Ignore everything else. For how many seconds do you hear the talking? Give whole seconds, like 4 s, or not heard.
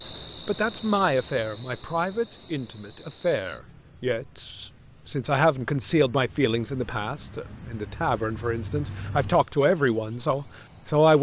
11 s.